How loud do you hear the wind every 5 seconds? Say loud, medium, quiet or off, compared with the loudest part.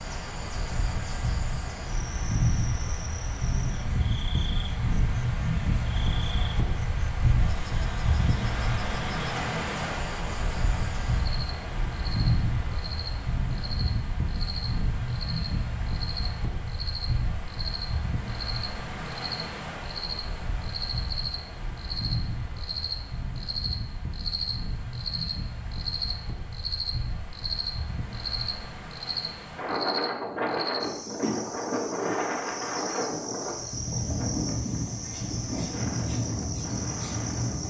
loud, loud, loud, medium, medium, medium, loud, loud.